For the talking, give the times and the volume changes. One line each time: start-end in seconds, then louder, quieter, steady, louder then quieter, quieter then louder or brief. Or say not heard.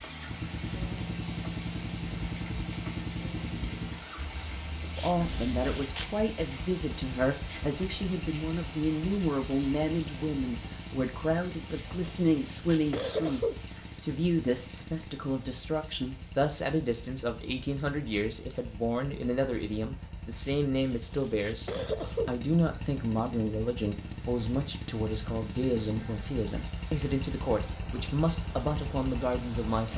5.0-29.9 steady.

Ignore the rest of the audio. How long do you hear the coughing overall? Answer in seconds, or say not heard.
5 s.